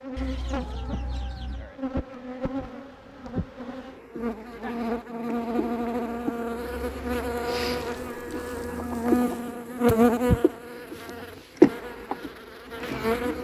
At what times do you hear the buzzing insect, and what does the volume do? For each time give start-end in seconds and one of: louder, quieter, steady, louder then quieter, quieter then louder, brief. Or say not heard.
0.0-13.3 louder.